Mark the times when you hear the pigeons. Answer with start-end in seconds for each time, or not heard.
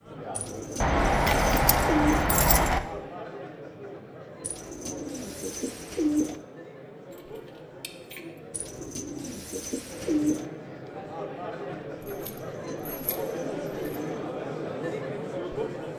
0.3-2.3, 4.4-6.4, 8.5-10.4, 12.5-14.2.